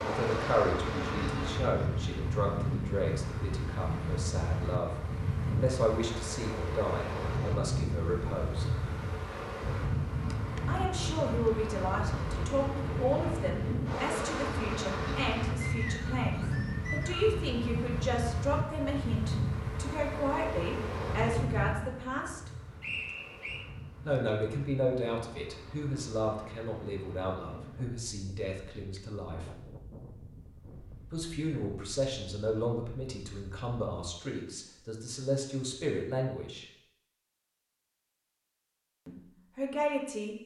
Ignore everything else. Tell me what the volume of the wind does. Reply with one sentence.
The loudness of the wind goes down.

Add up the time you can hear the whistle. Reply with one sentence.
You can hear the whistle for 3 seconds altogether.